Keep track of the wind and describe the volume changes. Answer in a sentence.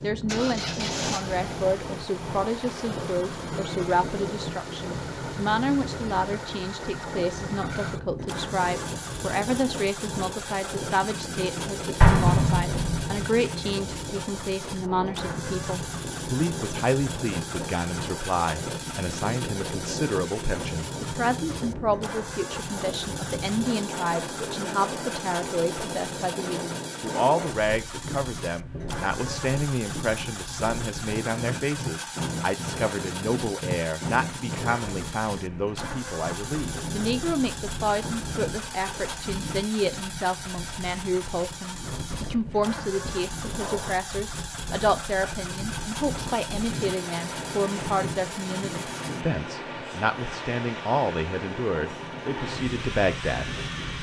The volume of the wind stays about the same.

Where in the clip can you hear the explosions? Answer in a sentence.
The explosions can be heard from 12.0 to 13.2 s.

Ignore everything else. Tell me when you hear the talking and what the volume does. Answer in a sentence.
The talking can be heard from 0.0 to 53.9 s, at a steady volume.